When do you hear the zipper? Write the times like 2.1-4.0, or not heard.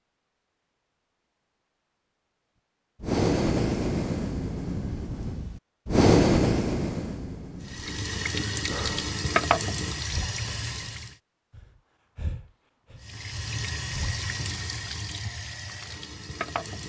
not heard.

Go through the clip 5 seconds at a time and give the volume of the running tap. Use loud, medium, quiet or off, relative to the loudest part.
off, loud, medium, medium.